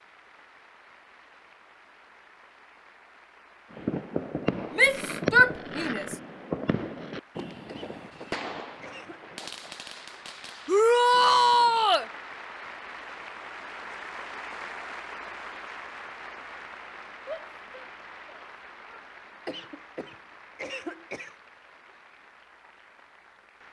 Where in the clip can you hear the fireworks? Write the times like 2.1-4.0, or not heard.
3.7-11.8.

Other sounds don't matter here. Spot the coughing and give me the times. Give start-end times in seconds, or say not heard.
7.7-9.3, 19.4-21.4.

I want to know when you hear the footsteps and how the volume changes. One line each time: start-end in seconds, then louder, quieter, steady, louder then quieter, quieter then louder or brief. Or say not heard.
not heard.